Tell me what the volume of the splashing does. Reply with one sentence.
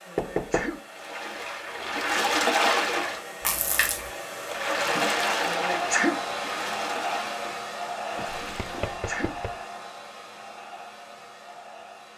The loudness of the splashing goes down.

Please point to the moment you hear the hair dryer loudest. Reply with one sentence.
The volume of the hair dryer peaks at 6 seconds.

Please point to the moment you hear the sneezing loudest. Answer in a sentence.
The loudest moment of the sneezing is at 6 seconds.